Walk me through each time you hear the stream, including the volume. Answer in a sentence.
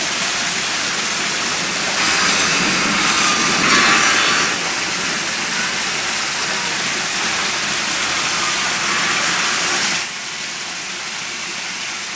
The stream can be heard from 0.0 to 12.1 s, at a steady volume.